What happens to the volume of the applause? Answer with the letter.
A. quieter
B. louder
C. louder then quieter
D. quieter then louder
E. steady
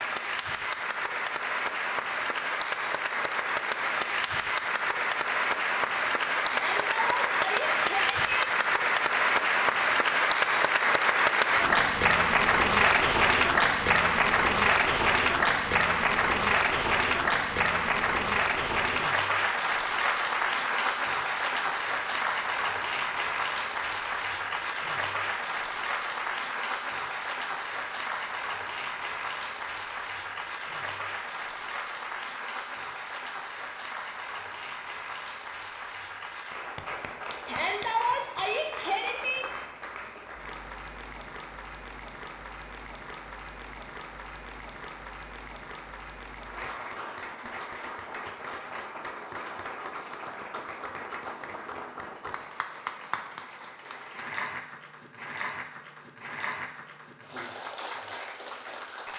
A.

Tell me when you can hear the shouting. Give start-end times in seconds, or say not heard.
6.5-8.5, 37.5-39.5.